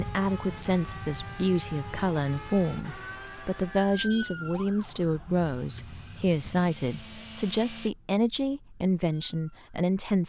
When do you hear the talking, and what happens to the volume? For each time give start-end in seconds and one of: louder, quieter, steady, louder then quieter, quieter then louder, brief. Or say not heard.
0.0-10.2 steady.